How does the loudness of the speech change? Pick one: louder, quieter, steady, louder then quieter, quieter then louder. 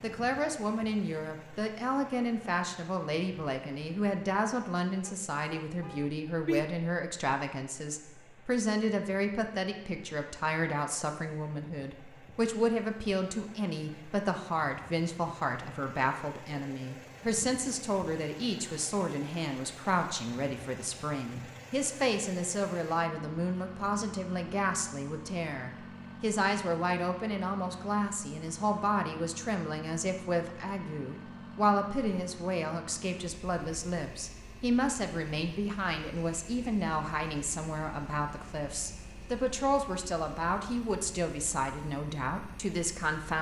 steady.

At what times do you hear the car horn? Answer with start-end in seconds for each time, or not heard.
5.0-6.6.